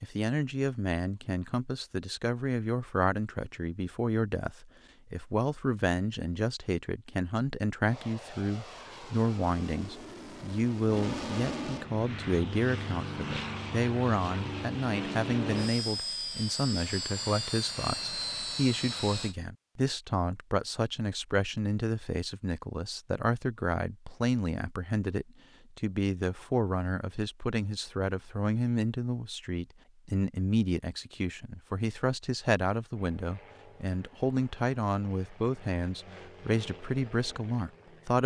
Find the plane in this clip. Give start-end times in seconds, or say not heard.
7.8-19.4, 32.9-38.2.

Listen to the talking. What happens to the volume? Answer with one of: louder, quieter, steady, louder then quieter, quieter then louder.
steady.